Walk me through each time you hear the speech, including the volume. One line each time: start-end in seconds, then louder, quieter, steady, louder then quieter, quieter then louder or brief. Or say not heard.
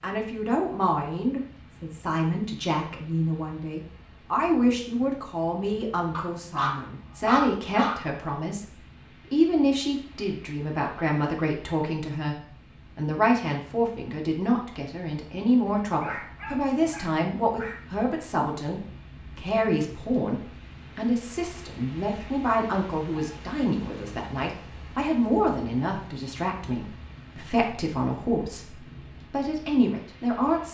0.0-30.6 steady.